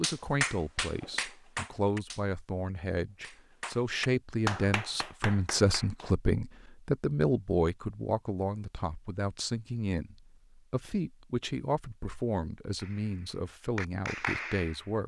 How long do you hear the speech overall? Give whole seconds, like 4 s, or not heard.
15 s.